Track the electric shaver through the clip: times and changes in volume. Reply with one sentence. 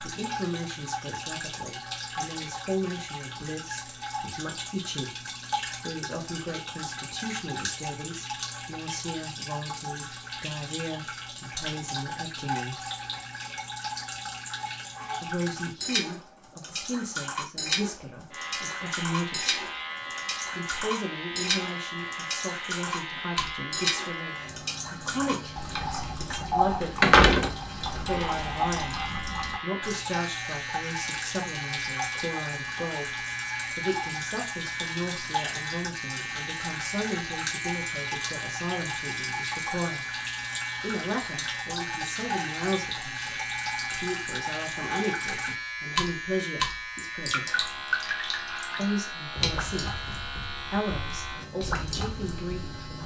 You can hear the electric shaver from 18.3 to 53.0 s, at a steady volume.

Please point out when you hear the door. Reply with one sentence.
The door can be heard from 27.0 to 28.4 s.